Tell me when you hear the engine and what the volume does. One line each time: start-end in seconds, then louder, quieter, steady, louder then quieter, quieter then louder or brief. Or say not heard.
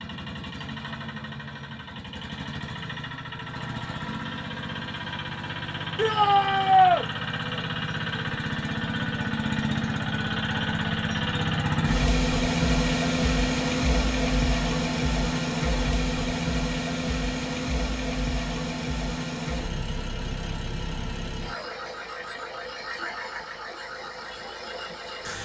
0.0-25.3 louder then quieter.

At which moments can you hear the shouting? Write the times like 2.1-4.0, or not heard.
6.0-7.0.